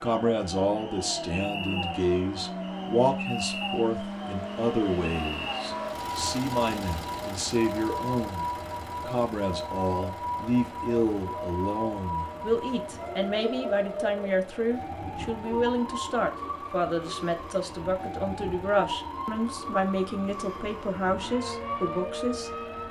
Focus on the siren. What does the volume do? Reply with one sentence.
The volume of the siren stays about the same.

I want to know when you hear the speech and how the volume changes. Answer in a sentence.
You can hear the speech from 0.0 to 22.5 s, at a steady volume.